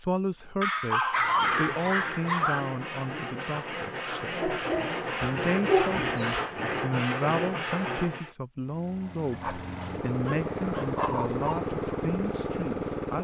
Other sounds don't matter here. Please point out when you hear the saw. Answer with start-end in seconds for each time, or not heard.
1.1-8.3.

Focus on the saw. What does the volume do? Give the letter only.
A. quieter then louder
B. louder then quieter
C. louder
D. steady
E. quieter
C.